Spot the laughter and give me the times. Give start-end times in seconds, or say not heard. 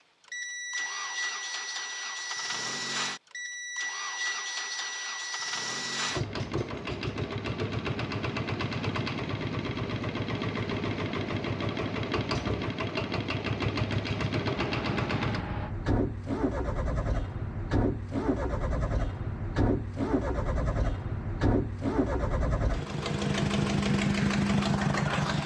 14.6-15.8.